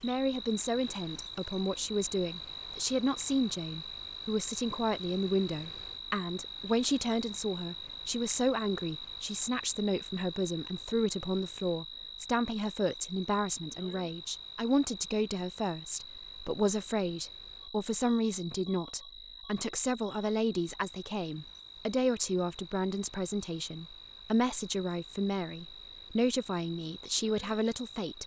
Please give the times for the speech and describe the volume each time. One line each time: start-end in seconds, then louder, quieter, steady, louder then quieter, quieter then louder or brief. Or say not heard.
0.0-28.2 steady.